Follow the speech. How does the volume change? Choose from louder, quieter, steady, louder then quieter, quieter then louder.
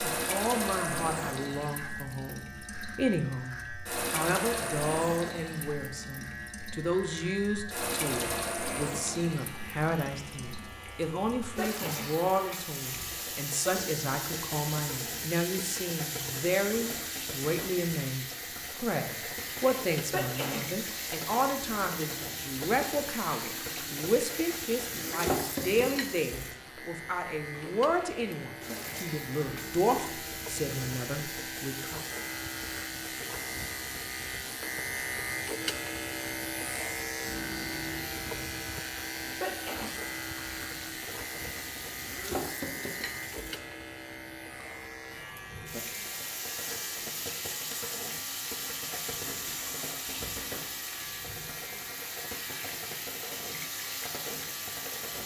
steady.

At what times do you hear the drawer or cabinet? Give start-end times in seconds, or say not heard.
not heard.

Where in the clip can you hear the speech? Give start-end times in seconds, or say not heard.
0.0-32.0.